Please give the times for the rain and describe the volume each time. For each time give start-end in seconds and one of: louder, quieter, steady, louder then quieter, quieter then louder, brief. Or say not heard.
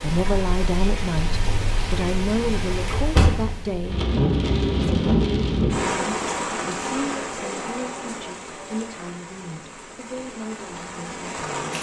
0.0-11.7 louder then quieter.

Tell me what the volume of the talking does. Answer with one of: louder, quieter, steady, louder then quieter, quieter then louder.
quieter.